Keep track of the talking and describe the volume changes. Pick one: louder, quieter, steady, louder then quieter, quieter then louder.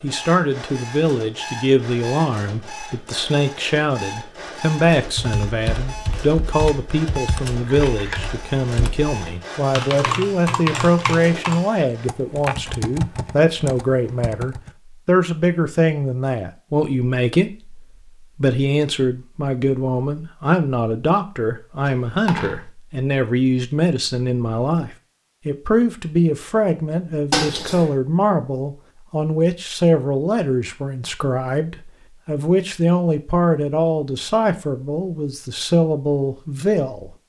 steady.